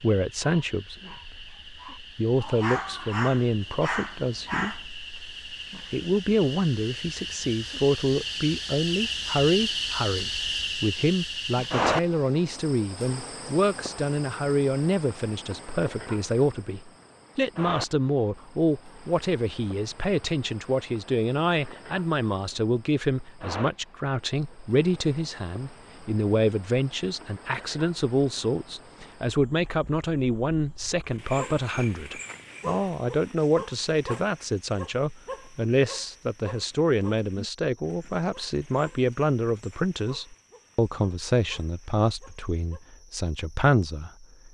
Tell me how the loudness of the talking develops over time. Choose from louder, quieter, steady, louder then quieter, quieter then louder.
steady.